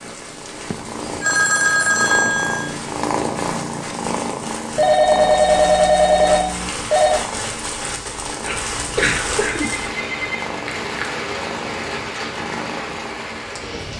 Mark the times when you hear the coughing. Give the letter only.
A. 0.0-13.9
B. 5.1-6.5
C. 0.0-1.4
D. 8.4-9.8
D.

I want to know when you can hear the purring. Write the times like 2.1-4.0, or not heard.
0.0-13.9.